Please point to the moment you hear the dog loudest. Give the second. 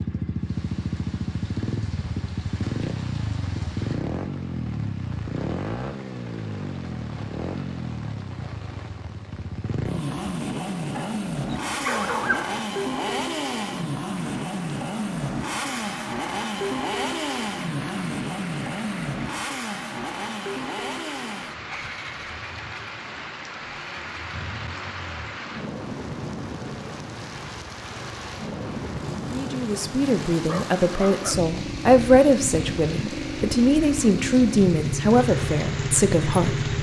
12 s.